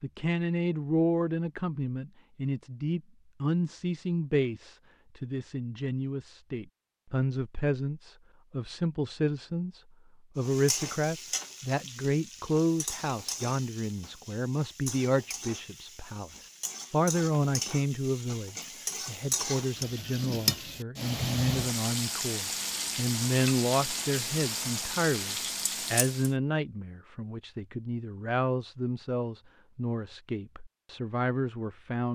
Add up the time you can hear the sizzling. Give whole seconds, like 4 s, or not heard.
16 s.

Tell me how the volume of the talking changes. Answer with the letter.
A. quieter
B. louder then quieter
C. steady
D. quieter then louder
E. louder
C.